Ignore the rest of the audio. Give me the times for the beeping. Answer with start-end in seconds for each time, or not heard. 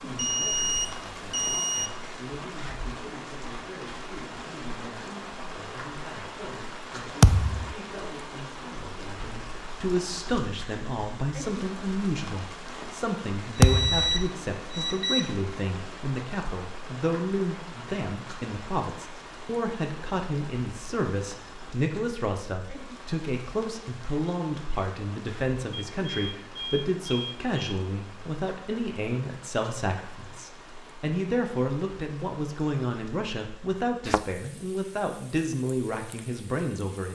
0.1-1.9, 13.6-15.3, 25.7-27.8.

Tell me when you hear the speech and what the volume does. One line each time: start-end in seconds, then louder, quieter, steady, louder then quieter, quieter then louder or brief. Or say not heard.
0.0-37.1 louder.